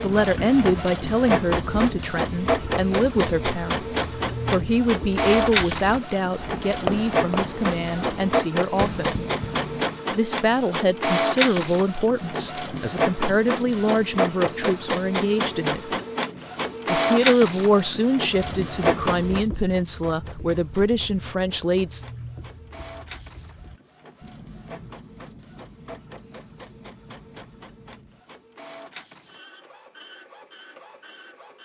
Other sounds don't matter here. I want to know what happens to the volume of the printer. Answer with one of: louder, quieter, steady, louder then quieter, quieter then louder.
quieter.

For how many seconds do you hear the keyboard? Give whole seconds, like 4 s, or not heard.
not heard.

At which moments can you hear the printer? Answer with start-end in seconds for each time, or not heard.
0.0-31.6.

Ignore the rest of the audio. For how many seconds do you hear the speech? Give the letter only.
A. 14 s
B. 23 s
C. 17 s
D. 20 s
D.